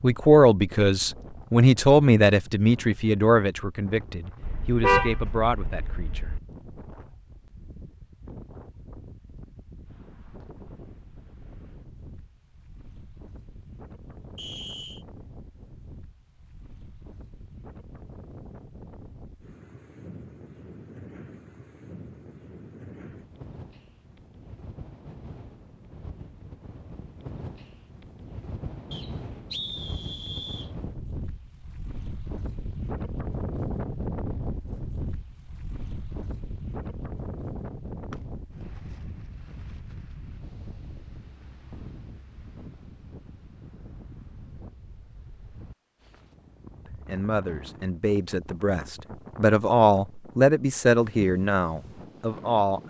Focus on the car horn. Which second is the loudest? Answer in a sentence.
The volume of the car horn peaks at 5 seconds.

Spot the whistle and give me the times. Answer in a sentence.
You can hear the whistle from 14.3 to 15.1 s and from 28.9 to 30.7 s.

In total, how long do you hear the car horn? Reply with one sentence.
The car horn can be heard for 2 seconds in total.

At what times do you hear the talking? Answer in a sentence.
The talking can be heard from 0.0 to 6.3 s and from 46.9 to 52.8 s.